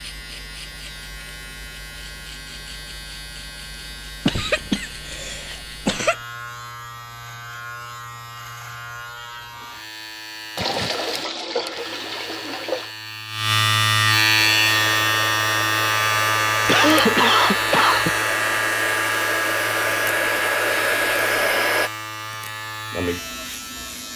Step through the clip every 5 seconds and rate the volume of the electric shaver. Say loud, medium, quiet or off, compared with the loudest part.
quiet, quiet, loud, loud, medium.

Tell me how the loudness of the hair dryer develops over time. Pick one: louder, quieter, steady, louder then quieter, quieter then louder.
louder.